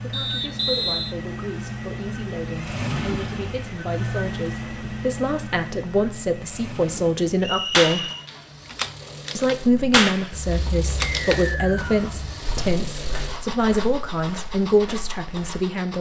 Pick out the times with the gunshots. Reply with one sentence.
You can hear the gunshots from 7.7 to 11.4 s.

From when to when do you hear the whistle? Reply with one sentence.
The whistle can be heard from 0.1 to 1.1 s, from 7.4 to 8.2 s and from 11.1 to 12.1 s.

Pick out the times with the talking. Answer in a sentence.
You can hear the talking from 0.0 to 8.1 s and from 9.3 to 15.9 s.